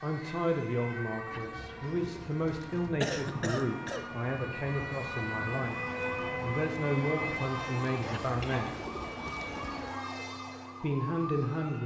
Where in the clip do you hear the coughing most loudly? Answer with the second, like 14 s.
3 s.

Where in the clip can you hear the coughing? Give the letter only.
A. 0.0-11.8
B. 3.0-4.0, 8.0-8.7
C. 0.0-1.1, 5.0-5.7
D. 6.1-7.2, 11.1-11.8
B.